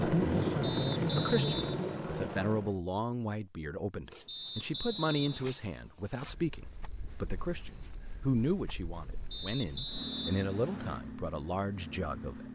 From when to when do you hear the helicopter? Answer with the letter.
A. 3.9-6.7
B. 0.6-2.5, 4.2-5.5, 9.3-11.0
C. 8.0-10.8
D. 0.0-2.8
D.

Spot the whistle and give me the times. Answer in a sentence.
The whistle can be heard from 0.6 to 2.5 s, from 4.2 to 5.5 s and from 9.3 to 11.0 s.